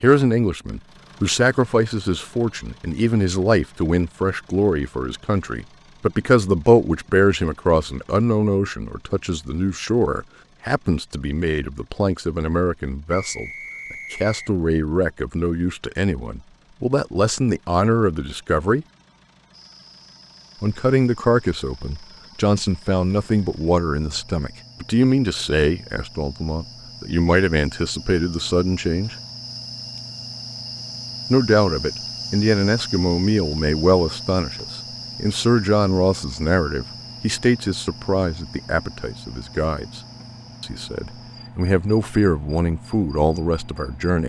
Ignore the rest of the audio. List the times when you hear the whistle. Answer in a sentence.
The whistle can be heard from 13.1 to 14.6 s.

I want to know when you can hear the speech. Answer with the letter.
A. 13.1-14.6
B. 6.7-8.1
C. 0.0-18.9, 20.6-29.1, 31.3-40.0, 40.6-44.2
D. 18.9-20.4
C.